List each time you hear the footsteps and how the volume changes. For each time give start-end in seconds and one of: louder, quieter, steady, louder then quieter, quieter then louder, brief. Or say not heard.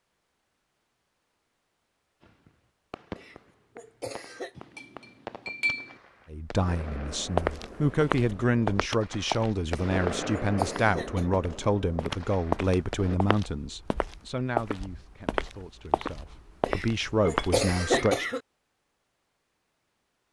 7.3-18.1 steady.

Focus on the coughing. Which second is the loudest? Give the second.
18 s.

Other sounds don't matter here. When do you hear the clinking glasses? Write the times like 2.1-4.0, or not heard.
4.5-6.0, 17.2-18.2.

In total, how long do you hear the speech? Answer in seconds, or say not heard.
12 s.